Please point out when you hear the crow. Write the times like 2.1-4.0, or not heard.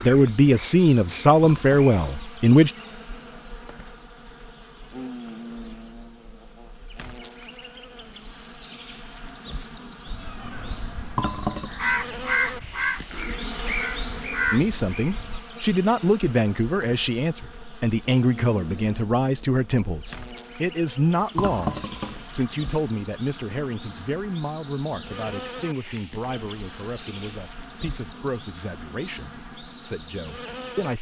10.1-15.4.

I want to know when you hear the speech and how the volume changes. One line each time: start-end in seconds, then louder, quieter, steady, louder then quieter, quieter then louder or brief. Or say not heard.
0.0-2.7 brief
14.5-30.9 quieter.